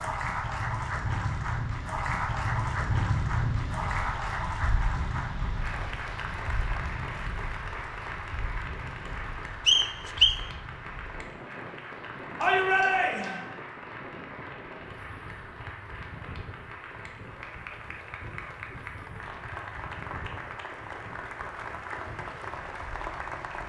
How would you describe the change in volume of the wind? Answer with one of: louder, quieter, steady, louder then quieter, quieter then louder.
quieter.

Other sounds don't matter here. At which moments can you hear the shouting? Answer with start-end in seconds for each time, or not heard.
12.4-13.4.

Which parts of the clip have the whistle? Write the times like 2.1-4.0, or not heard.
9.7-10.4.